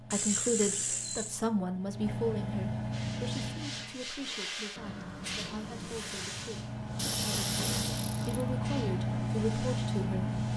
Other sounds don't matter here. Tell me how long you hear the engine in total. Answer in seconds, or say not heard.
8 s.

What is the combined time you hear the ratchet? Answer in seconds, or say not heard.
3 s.